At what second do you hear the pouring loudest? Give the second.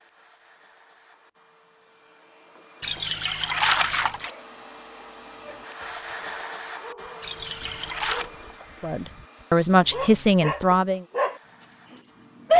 4 s.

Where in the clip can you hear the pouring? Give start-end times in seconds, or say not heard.
2.8-4.3, 7.2-8.3.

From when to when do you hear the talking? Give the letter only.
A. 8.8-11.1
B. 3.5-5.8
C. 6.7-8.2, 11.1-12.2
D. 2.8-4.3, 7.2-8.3
A.